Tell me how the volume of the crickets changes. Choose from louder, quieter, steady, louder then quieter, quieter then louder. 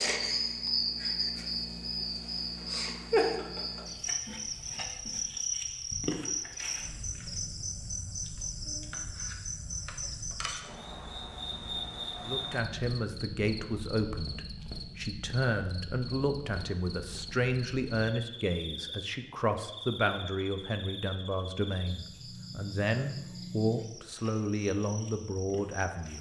quieter.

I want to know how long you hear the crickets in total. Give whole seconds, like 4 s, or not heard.
26 s.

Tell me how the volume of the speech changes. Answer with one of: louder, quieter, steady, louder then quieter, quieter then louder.
steady.